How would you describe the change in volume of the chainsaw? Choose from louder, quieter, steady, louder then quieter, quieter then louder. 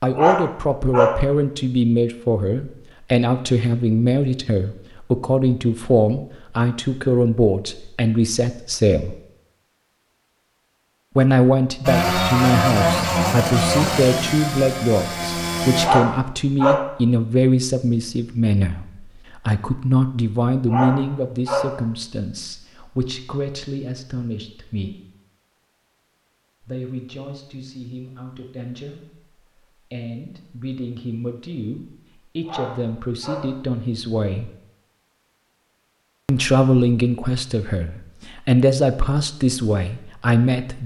quieter.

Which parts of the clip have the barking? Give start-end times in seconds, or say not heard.
0.1-1.2, 15.8-16.9, 20.6-21.8, 32.5-33.5.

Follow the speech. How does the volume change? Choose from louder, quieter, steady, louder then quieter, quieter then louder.
quieter then louder.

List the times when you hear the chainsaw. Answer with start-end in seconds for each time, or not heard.
11.8-15.9.